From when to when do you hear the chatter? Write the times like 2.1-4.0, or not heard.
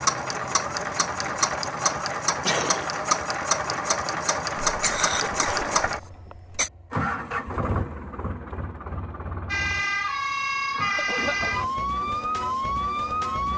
not heard.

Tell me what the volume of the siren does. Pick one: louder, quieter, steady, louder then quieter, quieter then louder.
steady.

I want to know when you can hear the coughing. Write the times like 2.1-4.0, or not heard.
2.5-2.9, 4.7-6.7, 10.9-11.7.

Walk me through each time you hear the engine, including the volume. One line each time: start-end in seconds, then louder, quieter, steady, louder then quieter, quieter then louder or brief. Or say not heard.
0.0-13.5 quieter.